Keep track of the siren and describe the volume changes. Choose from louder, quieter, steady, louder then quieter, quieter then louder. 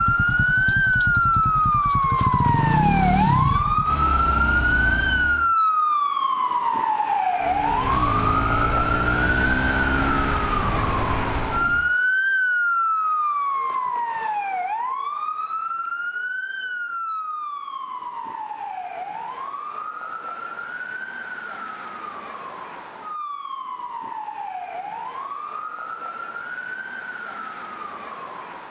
quieter.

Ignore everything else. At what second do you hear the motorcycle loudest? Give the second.
3 s.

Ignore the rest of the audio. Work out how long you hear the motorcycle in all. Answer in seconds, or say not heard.
10 s.